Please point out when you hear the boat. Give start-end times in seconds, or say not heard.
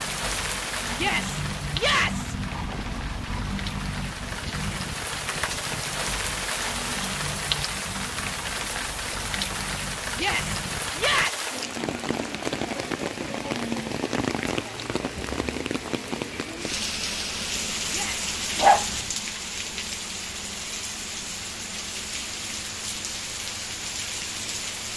0.0-11.3.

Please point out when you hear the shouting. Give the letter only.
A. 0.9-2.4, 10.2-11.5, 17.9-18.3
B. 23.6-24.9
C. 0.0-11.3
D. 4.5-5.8
A.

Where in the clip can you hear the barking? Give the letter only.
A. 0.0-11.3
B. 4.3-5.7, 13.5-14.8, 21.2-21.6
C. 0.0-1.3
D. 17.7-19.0
D.